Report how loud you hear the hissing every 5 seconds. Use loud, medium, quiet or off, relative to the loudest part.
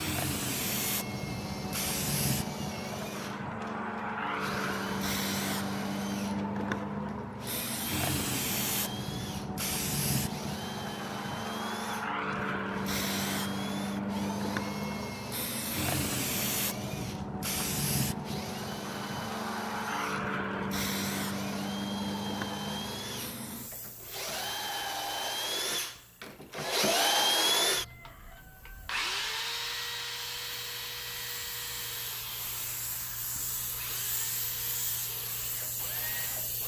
loud, loud, loud, loud, loud, quiet, medium, medium.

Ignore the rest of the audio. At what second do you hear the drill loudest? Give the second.
27 s.